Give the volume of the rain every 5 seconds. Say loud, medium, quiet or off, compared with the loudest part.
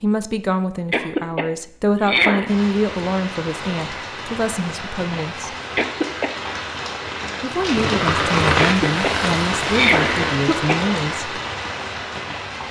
medium, loud, loud.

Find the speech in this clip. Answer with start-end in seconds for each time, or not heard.
0.0-5.5, 7.4-11.3.